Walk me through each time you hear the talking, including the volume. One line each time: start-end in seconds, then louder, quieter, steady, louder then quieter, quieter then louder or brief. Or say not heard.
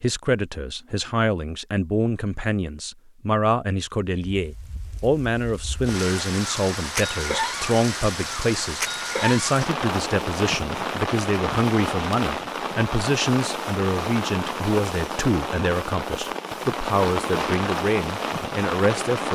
0.0-19.3 steady.